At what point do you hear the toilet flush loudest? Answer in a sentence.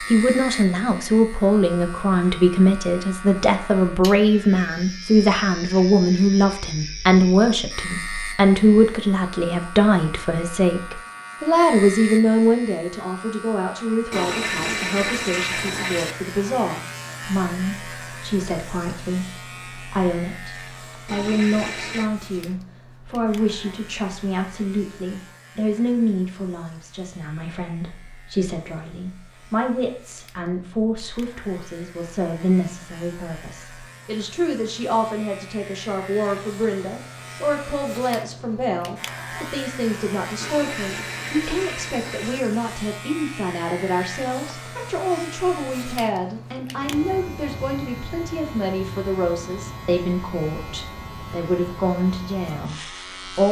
The loudest moment of the toilet flush is at 15 seconds.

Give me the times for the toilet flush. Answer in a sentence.
You can hear the toilet flush from 14.1 to 16.1 s, from 21.1 to 22.1 s and from 40.4 to 42.4 s.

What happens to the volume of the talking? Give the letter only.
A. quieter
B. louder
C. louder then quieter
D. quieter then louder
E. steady
A.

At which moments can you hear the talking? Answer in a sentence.
You can hear the talking from 0.1 to 53.4 s.